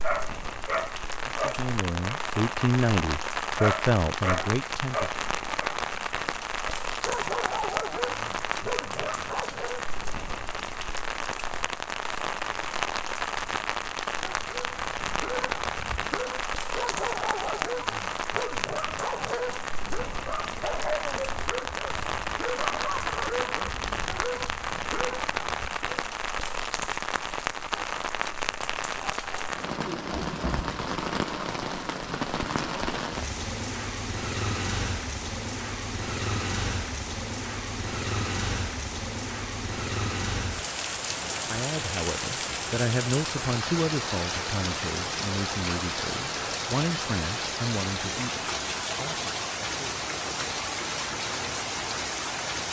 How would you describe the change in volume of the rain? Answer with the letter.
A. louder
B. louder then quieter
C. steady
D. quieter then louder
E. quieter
C.